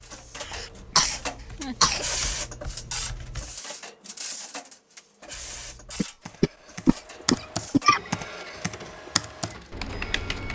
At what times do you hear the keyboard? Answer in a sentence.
You can hear the keyboard from 0.0 to 3.5 s and from 5.2 to 10.5 s.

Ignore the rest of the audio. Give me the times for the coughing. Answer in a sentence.
The coughing can be heard from 0.4 to 2.0 s and from 6.0 to 8.0 s.